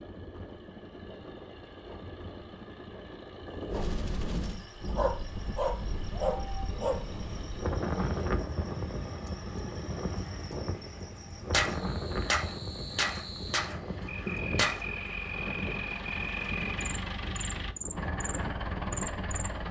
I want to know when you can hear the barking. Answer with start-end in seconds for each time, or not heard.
4.8-7.0.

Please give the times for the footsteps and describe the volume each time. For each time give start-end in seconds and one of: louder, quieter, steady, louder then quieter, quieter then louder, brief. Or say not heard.
not heard.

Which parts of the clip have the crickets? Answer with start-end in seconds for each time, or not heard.
4.4-19.5.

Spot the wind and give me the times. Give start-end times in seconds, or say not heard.
0.0-19.4.